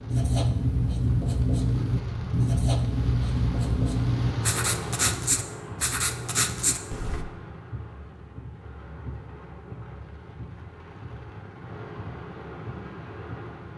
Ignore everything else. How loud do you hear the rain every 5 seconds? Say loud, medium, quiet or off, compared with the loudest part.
loud, medium, medium.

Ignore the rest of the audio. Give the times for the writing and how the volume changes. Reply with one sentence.
You can hear the writing from 0.1 to 7.2 s, at a steady volume.